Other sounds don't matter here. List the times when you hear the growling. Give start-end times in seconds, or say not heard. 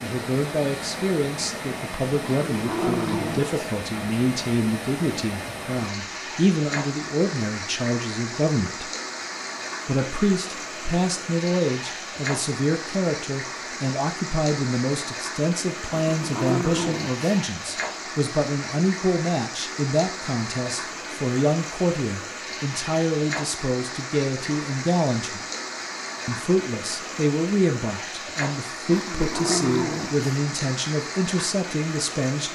2.2-3.8, 15.9-17.2, 28.9-30.4.